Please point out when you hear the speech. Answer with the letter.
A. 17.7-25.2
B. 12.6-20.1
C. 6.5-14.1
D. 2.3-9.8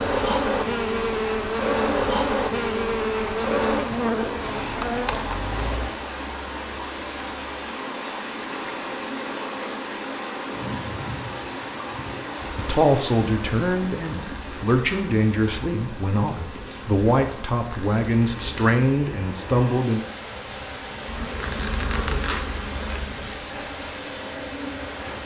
B.